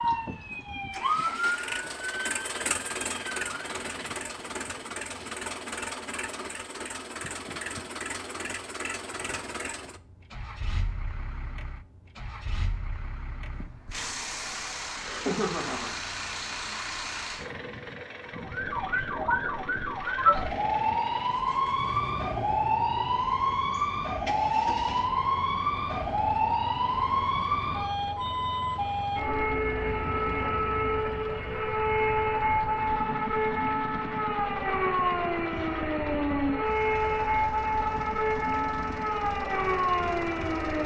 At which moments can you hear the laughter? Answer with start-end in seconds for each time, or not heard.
15.0-15.9.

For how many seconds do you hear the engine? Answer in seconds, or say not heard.
41 s.